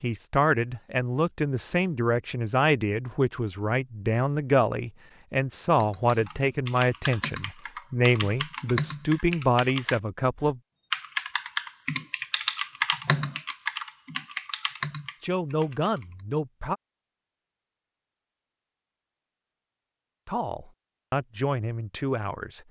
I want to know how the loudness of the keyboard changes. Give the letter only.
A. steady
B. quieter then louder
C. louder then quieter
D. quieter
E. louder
C.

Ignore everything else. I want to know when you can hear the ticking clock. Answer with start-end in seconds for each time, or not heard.
not heard.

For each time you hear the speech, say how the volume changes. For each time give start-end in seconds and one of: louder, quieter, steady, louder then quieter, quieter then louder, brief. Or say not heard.
0.0-10.6 steady
15.2-16.8 brief
20.2-22.6 brief.